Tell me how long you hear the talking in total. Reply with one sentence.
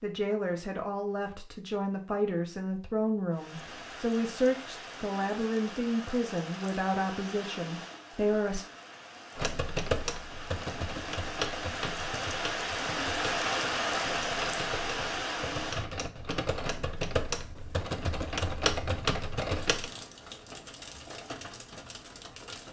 You can hear the talking for 9 seconds altogether.